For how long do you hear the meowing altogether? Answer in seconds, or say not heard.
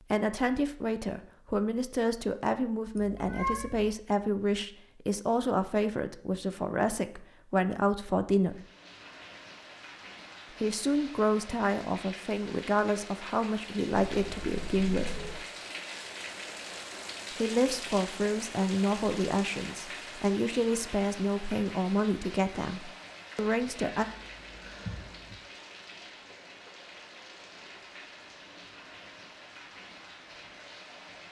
4 s.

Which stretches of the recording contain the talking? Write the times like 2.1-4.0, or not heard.
0.1-8.6, 10.6-15.2, 17.4-24.1.